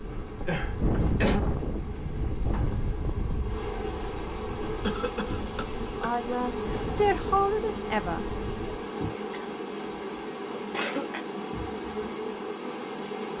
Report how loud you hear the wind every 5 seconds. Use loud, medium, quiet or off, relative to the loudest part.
loud, medium, off.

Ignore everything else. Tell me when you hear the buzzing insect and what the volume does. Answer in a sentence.
The buzzing insect can be heard from 0.0 to 13.3 s, getting louder.